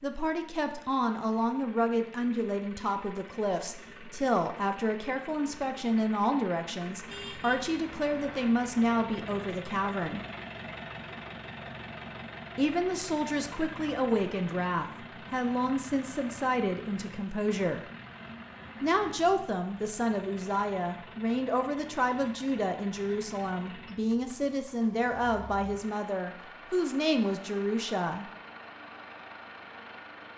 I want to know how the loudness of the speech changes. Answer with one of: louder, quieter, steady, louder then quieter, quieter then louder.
steady.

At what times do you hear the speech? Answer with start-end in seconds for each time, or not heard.
0.0-10.2, 12.6-17.8, 18.8-28.2.